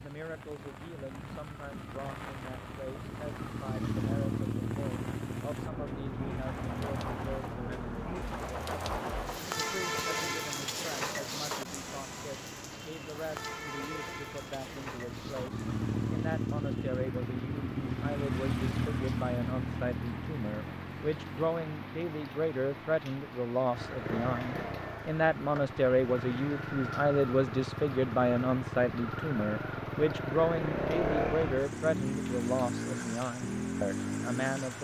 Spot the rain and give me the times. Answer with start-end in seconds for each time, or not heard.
0.0-34.7.